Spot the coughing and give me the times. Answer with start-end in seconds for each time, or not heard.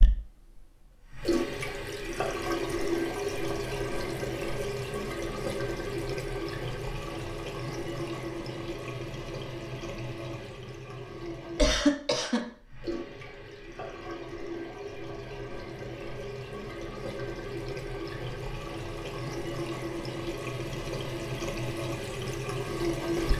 11.6-12.4.